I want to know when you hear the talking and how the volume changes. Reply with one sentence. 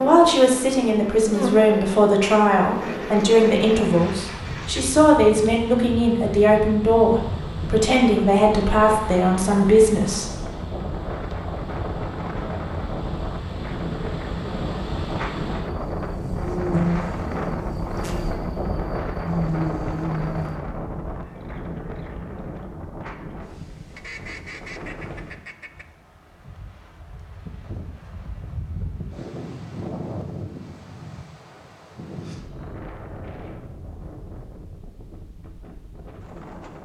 The talking can be heard from 0.0 to 10.2 s, at a steady volume.